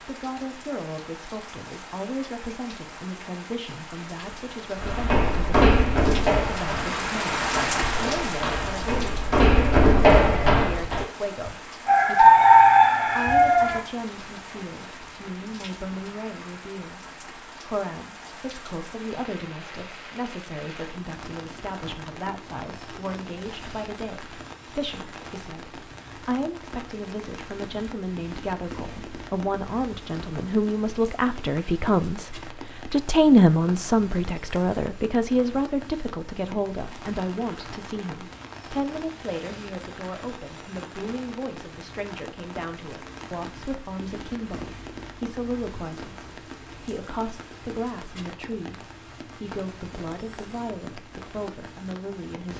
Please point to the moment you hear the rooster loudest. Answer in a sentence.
The volume of the rooster peaks at 12 seconds.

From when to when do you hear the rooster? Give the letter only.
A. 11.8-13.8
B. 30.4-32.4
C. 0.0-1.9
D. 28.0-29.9
A.